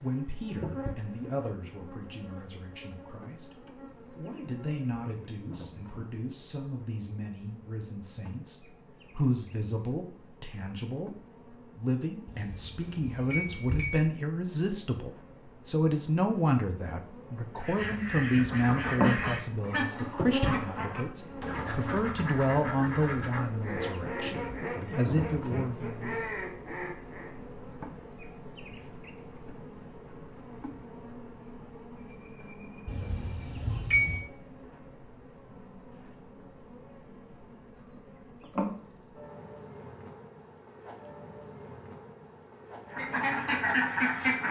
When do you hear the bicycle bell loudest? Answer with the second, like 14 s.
34 s.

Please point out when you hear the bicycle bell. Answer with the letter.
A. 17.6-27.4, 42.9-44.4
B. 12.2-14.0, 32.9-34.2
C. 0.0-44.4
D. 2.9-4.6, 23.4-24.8
B.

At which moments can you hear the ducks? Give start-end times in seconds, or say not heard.
17.6-27.4, 42.9-44.4.